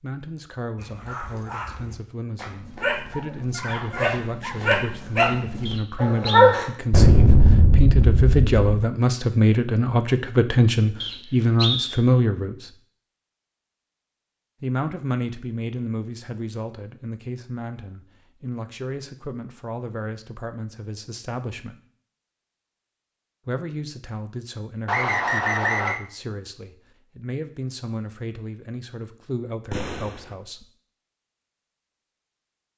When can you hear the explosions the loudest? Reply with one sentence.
The volume of the explosions peaks at 7 seconds.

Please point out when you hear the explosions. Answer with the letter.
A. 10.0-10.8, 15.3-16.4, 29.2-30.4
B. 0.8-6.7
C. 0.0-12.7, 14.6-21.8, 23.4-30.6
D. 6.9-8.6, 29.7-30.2
D.